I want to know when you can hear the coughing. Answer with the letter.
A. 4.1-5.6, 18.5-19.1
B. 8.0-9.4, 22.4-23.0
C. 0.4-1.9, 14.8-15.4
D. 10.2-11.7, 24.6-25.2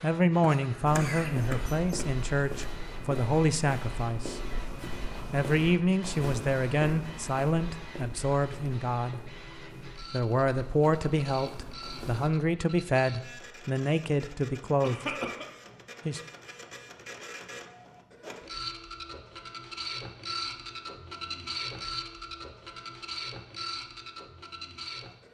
C.